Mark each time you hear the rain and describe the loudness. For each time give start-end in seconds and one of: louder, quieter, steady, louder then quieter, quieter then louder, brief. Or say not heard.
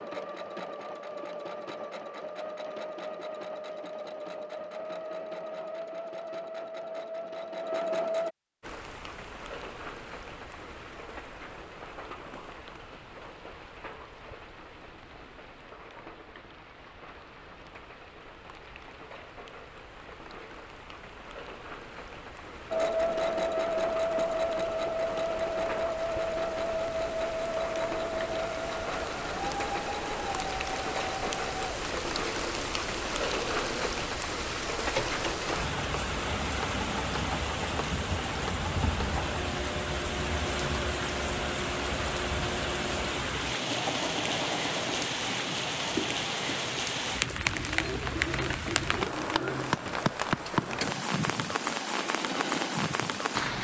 8.6-53.5 louder.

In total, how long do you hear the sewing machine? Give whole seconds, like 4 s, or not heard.
39 s.